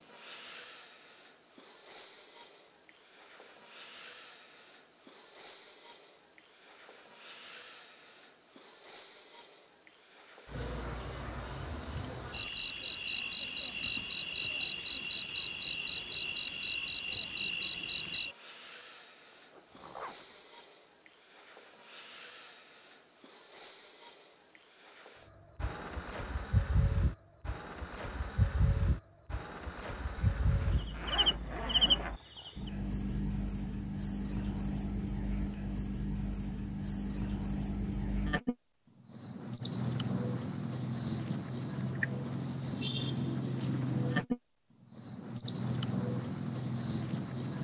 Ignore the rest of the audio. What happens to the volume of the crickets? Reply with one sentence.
The volume of the crickets stays about the same.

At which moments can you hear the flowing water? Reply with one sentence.
You can't hear the flowing water here.